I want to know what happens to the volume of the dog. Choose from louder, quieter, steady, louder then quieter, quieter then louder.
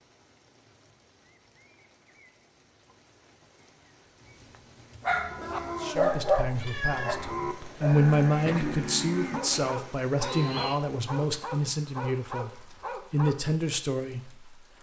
quieter.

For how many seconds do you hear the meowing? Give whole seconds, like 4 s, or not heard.
2 s.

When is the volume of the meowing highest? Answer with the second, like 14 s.
7 s.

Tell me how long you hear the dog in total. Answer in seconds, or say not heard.
9 s.